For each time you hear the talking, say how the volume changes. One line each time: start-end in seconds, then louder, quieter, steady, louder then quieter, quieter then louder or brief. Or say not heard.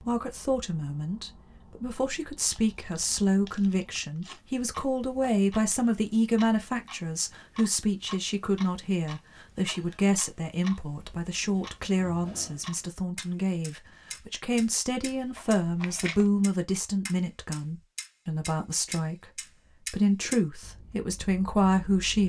0.0-22.2 steady.